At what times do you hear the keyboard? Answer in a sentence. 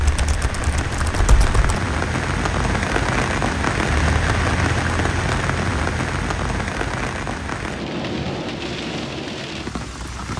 You can hear the keyboard from 0.0 to 1.8 s.